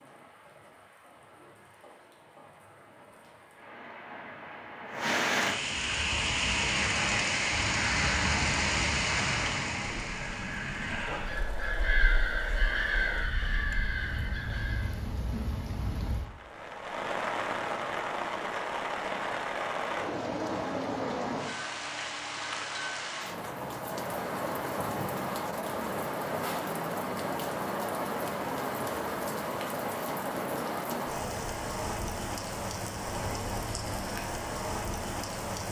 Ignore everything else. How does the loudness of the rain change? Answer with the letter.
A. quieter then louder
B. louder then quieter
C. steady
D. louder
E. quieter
C.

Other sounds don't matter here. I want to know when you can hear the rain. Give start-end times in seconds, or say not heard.
0.0-35.6.